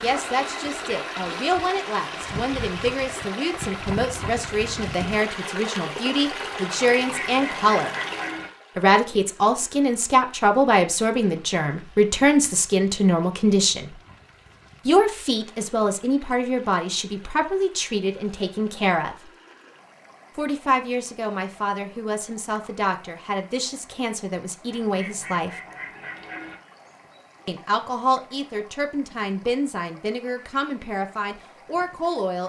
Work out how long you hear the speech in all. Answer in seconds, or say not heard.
28 s.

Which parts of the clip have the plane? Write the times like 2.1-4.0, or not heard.
not heard.